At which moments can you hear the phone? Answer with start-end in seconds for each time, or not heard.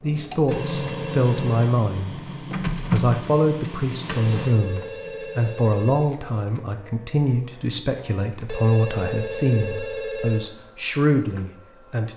0.4-1.6, 4.0-6.1, 8.4-10.5.